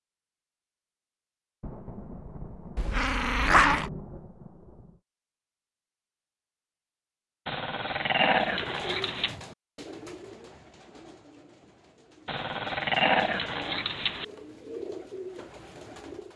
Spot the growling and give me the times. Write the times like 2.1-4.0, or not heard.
2.8-3.9, 7.5-9.3, 12.2-14.2.